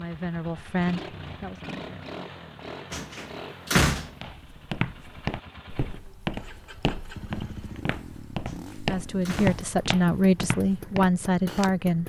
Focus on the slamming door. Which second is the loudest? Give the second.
4 s.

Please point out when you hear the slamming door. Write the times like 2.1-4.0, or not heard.
2.9-4.1, 8.4-9.7.